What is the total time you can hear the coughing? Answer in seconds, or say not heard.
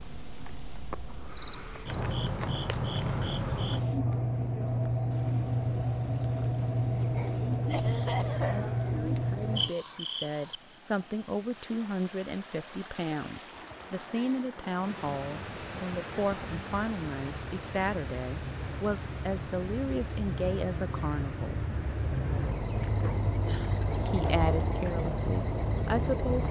2 s.